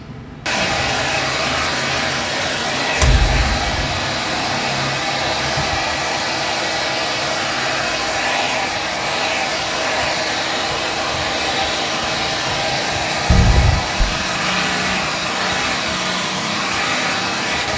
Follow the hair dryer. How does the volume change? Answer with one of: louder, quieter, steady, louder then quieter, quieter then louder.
steady.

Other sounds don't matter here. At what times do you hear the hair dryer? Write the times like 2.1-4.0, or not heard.
0.0-17.7.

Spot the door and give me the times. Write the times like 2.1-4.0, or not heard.
3.0-4.0, 13.2-14.1.